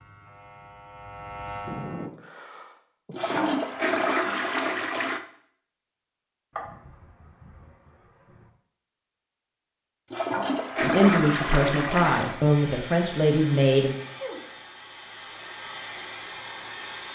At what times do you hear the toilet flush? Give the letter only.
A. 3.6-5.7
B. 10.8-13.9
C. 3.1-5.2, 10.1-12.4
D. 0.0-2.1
C.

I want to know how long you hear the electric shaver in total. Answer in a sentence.
The electric shaver can be heard for 2 seconds in total.